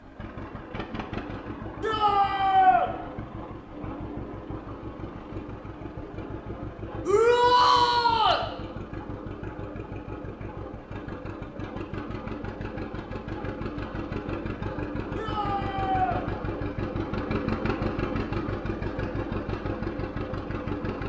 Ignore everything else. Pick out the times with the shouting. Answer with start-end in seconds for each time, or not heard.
1.8-2.9, 7.0-8.4, 15.2-16.2.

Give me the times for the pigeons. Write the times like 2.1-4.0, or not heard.
not heard.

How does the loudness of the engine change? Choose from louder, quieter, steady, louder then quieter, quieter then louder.
louder.